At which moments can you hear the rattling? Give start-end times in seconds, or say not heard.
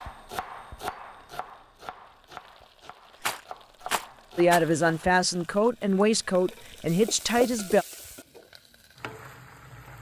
3.2-4.7.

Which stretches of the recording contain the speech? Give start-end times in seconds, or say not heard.
4.3-7.8.